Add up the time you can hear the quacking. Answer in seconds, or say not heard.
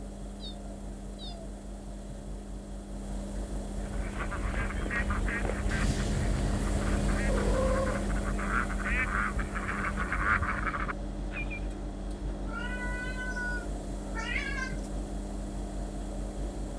8 s.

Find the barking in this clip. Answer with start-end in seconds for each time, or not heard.
not heard.